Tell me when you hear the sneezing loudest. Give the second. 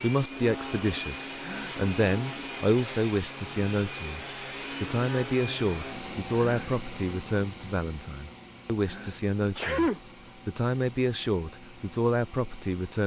10 s.